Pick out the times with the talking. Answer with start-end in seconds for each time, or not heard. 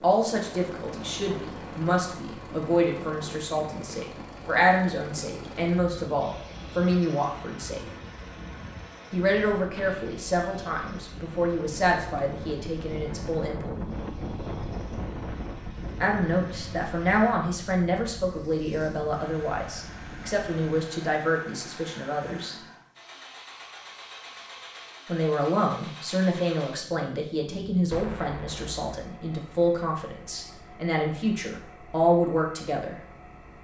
0.0-7.8, 9.1-13.8, 16.0-22.6, 25.1-33.0.